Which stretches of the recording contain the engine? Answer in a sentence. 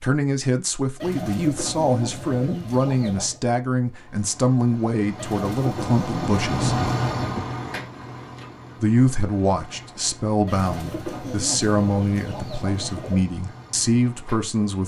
The engine can be heard from 3.8 to 14.8 s.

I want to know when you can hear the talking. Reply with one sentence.
The talking can be heard from 0.0 to 6.8 s and from 8.8 to 14.8 s.